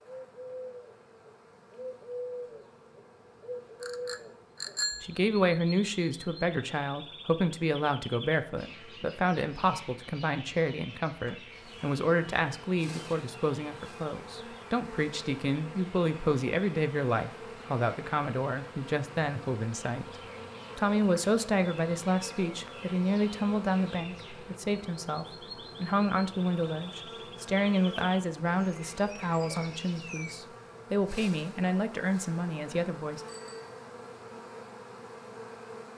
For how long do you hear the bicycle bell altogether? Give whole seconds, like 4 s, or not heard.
2 s.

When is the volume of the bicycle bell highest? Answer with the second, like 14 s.
5 s.